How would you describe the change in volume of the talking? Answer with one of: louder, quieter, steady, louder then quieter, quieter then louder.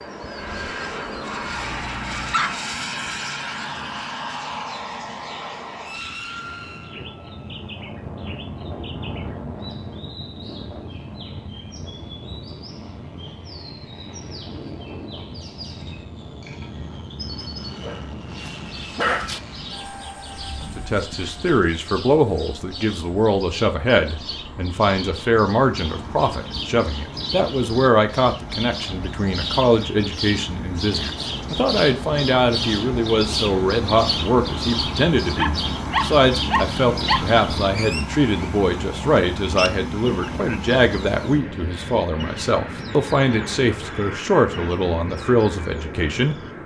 steady.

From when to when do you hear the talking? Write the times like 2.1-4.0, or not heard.
20.8-46.4.